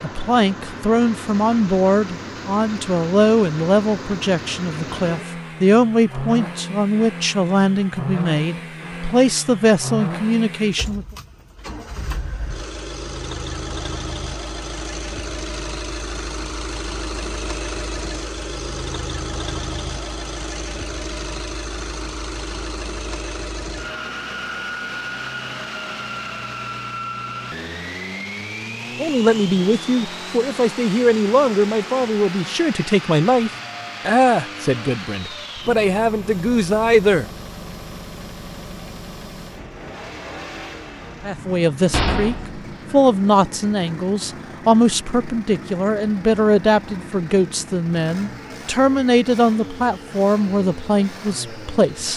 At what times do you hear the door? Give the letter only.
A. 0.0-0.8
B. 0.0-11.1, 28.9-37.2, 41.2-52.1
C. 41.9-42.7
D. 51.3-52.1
C.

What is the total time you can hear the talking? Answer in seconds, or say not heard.
30 s.